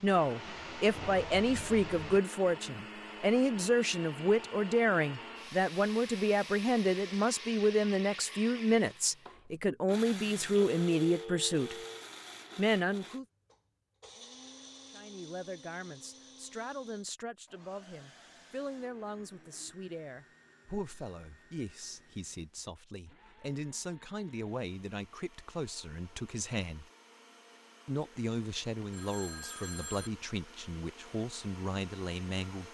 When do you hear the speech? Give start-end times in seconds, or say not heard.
0.0-11.8, 12.6-13.2, 14.9-26.9, 27.9-32.6.